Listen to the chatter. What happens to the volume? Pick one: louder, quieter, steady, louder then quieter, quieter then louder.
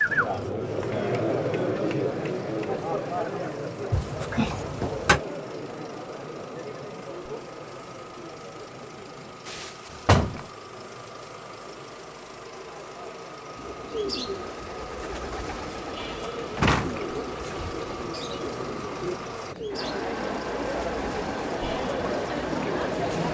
quieter then louder.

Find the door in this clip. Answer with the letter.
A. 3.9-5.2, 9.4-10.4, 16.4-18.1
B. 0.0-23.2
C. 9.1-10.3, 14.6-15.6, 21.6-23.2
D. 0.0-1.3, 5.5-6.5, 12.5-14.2
A.